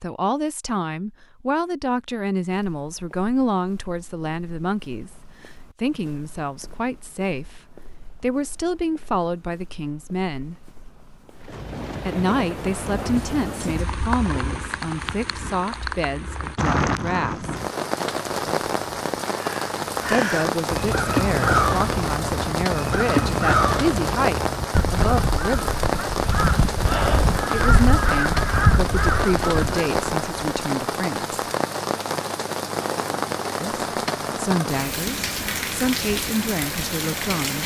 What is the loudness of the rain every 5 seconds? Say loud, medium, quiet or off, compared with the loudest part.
off, off, medium, loud, loud, loud, loud, loud.